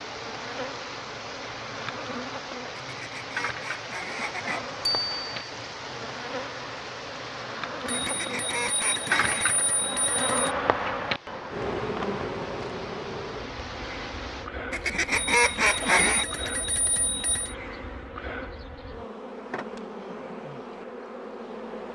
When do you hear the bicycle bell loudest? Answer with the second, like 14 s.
5 s.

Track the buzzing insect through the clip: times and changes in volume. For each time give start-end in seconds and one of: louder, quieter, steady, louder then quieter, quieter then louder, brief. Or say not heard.
0.0-21.8 louder then quieter.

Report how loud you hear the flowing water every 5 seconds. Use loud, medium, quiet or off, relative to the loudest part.
loud, loud, loud, off, off.